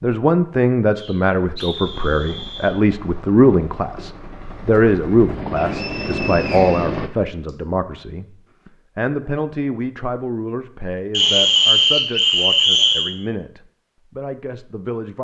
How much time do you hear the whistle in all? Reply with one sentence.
You can hear the whistle for 6 seconds altogether.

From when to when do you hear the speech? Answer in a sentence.
You can hear the speech from 0.0 to 15.1 s.